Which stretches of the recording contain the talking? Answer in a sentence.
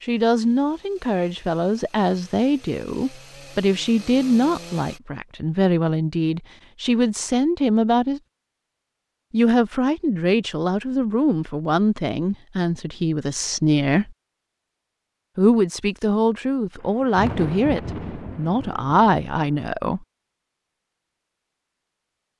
The talking can be heard from 0.0 to 8.2 s, from 9.3 to 14.2 s and from 15.3 to 20.0 s.